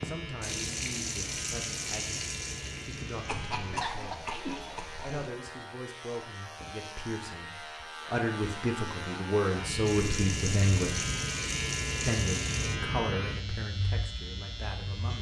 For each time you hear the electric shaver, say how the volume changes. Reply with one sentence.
The electric shaver can be heard from 0.0 to 15.1 s, getting louder.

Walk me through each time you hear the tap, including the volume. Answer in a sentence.
The tap can be heard from 0.0 to 5.3 s, getting quieter; and briefly from 9.8 to 12.8 s.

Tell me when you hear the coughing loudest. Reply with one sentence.
The volume of the coughing peaks at 4 seconds.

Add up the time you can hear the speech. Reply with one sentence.
You can hear the speech for 14 seconds altogether.